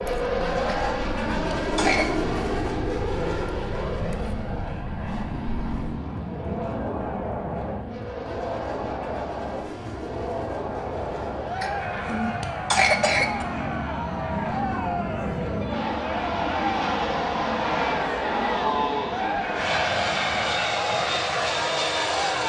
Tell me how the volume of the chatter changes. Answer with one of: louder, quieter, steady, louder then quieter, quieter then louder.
louder.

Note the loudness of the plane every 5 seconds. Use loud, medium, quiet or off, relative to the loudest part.
loud, medium, medium, loud, loud.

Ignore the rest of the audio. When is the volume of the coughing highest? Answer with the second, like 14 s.
13 s.